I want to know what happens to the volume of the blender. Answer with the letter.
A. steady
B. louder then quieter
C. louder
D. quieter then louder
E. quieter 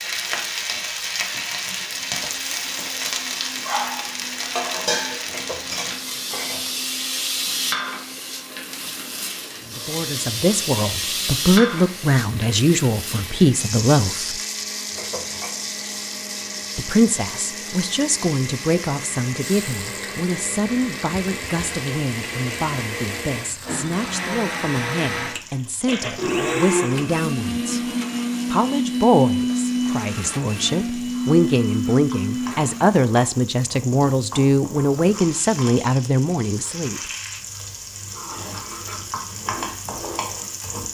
C.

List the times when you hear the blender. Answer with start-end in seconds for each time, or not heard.
1.9-33.0.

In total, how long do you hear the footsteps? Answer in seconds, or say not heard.
not heard.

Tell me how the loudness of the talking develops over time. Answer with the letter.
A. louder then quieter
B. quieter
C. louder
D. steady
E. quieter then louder
E.